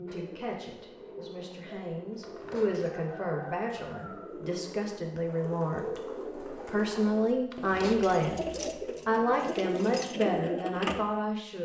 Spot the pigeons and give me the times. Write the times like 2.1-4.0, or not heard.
0.1-11.0.